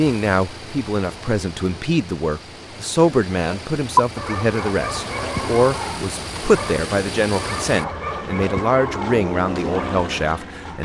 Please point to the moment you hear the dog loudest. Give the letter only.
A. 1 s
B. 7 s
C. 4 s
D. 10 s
C.